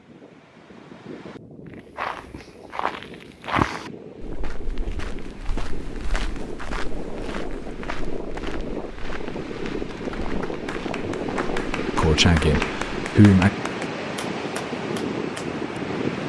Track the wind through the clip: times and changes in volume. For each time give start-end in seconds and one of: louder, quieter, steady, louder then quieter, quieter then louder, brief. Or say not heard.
0.0-16.2 louder.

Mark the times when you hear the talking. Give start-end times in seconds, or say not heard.
11.9-13.5.